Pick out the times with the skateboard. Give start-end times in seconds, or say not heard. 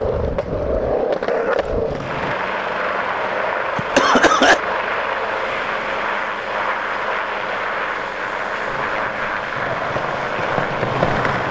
0.0-2.4, 8.7-11.4.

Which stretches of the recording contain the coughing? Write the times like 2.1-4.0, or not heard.
3.8-4.6.